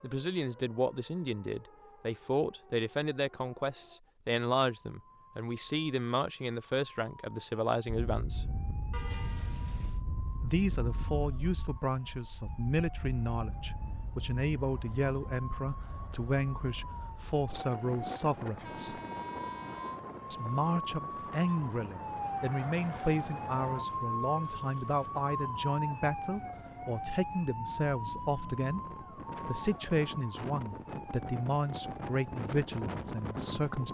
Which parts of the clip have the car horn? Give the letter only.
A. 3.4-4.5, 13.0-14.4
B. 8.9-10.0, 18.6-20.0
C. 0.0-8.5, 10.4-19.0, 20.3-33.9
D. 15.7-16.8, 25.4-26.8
B.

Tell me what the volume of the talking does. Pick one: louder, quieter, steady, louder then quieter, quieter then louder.
steady.